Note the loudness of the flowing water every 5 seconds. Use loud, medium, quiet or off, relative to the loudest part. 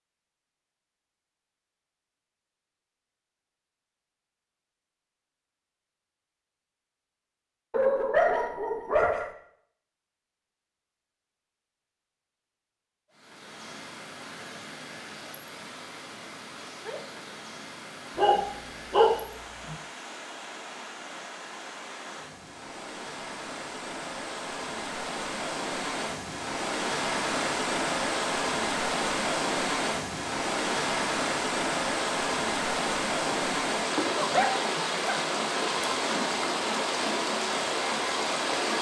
off, off, quiet, quiet, medium, loud, loud, loud.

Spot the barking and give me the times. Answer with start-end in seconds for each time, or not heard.
7.7-9.3, 18.1-19.8, 33.2-35.2.